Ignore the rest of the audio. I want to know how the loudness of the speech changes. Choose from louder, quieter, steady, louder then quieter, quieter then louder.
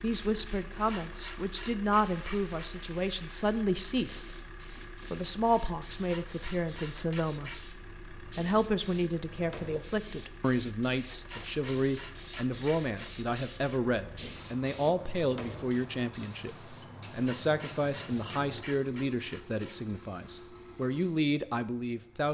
steady.